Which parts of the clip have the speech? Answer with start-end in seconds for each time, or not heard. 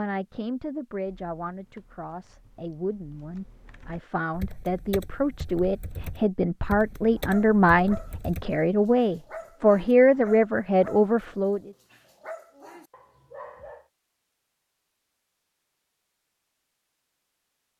0.0-11.7.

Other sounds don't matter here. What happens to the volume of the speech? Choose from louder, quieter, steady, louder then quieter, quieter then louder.
louder.